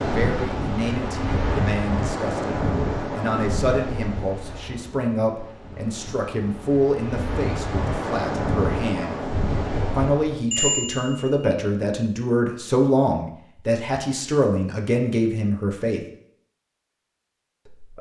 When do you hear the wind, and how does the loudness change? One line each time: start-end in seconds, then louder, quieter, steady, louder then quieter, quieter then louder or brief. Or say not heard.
0.0-10.4 quieter then louder.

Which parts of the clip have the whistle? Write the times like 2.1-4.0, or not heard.
not heard.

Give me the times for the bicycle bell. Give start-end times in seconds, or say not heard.
10.5-11.4.